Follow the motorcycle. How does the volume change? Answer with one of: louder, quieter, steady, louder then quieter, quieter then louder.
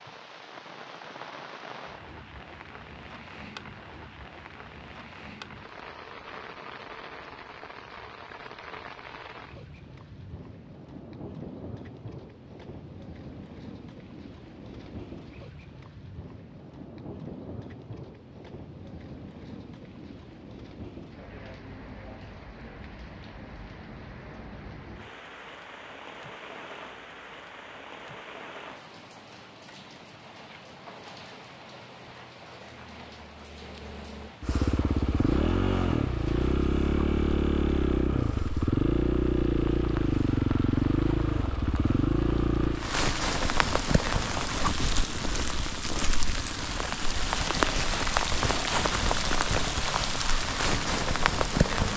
quieter.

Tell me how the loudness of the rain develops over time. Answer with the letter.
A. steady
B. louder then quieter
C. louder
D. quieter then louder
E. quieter
C.